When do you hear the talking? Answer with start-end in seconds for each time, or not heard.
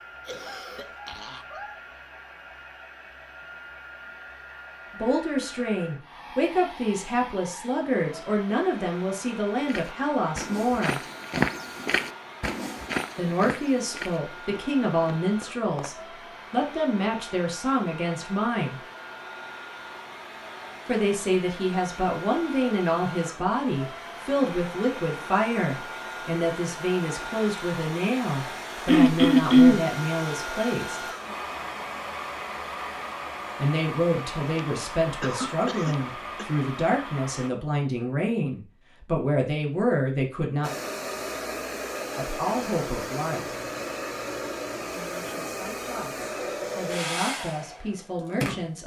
5.0-11.0, 13.2-18.8, 20.9-31.1, 33.5-40.7, 42.1-43.6, 44.8-48.8.